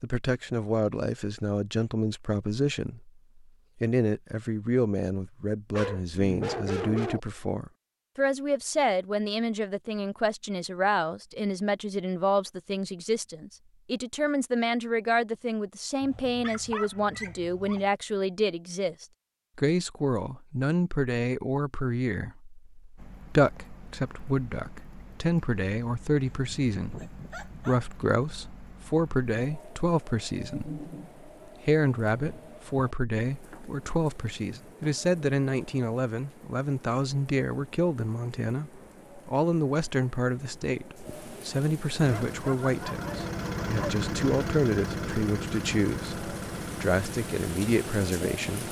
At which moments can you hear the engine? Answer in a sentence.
You can hear the engine from 42.0 to 48.6 s.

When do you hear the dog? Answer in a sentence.
The dog can be heard from 5.7 to 7.2 s, from 16.0 to 17.9 s, from 26.3 to 27.9 s and from 42.3 to 44.0 s.